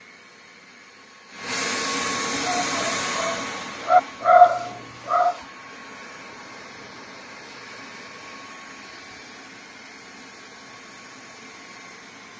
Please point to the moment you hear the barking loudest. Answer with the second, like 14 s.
4 s.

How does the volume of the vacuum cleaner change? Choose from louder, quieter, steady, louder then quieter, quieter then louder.
quieter.